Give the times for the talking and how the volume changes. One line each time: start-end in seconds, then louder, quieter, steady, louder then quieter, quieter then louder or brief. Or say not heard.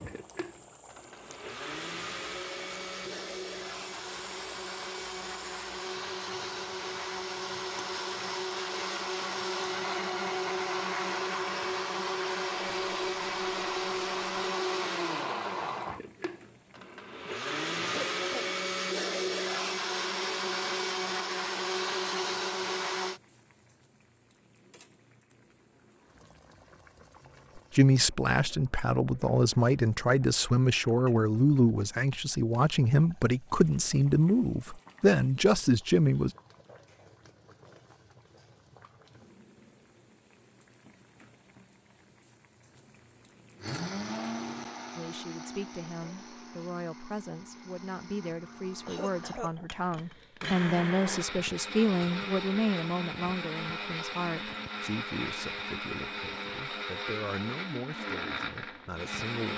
27.7-36.3 steady
45.0-59.5 louder then quieter.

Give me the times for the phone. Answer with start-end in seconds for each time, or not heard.
not heard.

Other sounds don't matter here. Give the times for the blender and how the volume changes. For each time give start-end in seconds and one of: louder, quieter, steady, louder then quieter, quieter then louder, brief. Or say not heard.
0.0-23.2 louder
43.6-59.5 quieter then louder.